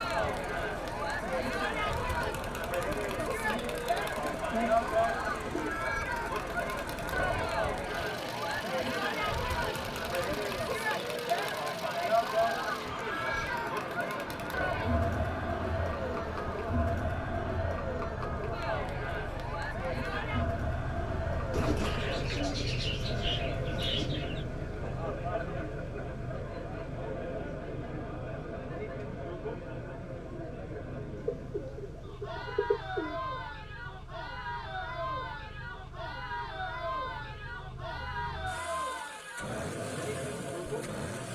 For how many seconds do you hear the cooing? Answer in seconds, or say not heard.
8 s.